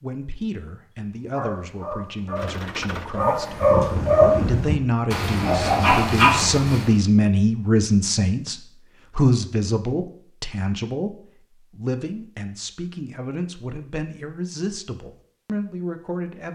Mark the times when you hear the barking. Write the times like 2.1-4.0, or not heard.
1.3-6.9.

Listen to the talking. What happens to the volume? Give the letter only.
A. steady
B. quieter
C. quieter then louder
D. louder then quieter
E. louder
D.